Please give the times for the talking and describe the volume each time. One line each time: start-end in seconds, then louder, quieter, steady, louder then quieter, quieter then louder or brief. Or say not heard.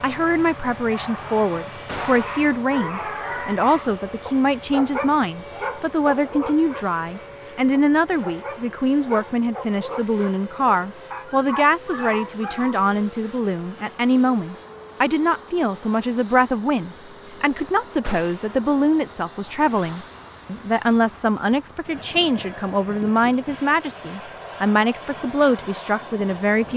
0.0-26.7 steady.